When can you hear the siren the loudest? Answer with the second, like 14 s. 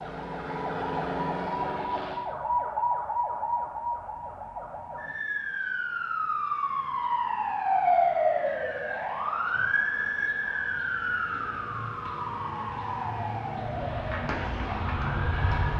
8 s.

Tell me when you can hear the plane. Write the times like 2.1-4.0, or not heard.
0.0-2.2, 13.7-15.7.